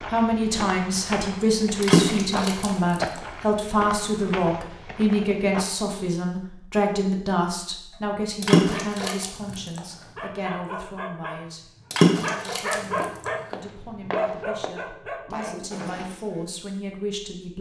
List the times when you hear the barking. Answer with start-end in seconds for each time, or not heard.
7.9-16.4.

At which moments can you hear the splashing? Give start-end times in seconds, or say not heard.
1.8-3.2, 8.4-9.8, 11.9-13.3.